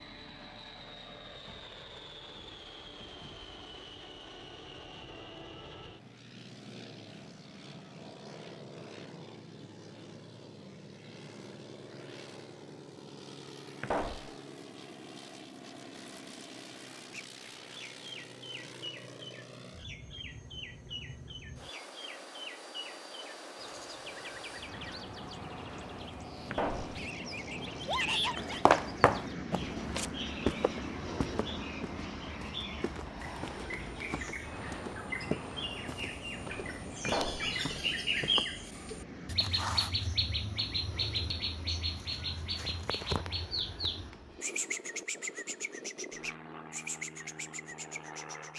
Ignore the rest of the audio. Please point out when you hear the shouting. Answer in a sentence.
You can hear the shouting from 27.9 to 28.6 s.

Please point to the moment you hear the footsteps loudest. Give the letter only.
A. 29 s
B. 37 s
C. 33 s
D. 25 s
A.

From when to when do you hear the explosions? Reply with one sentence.
You can hear the explosions from 13.8 to 14.3 s, from 26.5 to 27.0 s and from 37.0 to 37.5 s.